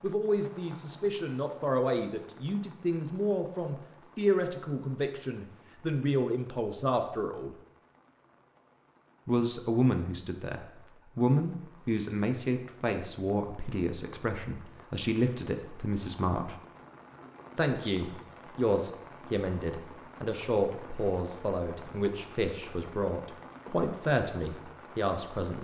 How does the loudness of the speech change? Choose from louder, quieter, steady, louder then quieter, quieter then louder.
steady.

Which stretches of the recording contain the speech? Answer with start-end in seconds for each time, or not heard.
0.0-7.5, 9.2-16.6, 17.6-25.6.